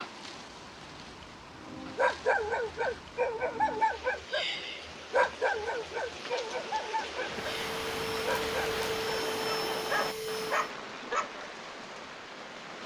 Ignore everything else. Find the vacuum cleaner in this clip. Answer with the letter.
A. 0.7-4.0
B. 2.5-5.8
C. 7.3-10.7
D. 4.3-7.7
C.